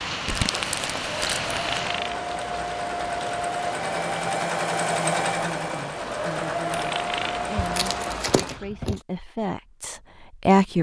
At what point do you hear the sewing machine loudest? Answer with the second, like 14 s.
5 s.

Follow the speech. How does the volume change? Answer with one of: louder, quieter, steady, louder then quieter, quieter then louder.
louder.